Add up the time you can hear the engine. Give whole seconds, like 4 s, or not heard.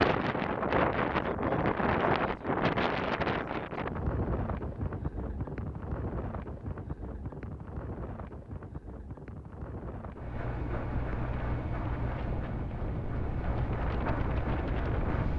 5 s.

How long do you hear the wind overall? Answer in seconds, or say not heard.
15 s.